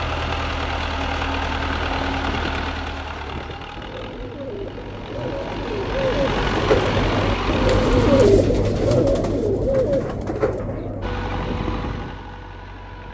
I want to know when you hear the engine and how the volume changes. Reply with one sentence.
You can hear the engine from 0.0 to 8.3 s, getting quieter then louder; and briefly from 11.0 to 13.1 s.